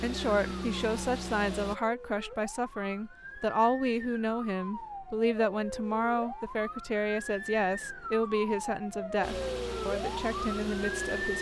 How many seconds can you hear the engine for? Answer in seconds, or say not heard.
4 s.